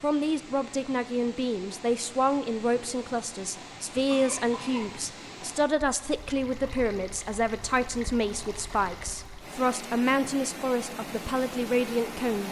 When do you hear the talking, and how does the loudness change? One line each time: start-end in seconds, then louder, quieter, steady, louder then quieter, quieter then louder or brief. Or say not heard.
0.0-12.4 steady.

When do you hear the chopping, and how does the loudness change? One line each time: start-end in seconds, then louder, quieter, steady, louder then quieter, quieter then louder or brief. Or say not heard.
not heard.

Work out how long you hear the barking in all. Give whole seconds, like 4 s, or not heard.
not heard.